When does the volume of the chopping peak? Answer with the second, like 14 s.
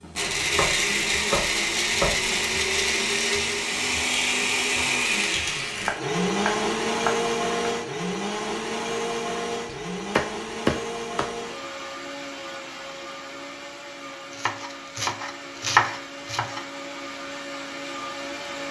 16 s.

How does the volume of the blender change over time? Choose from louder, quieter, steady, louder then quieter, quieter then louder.
quieter.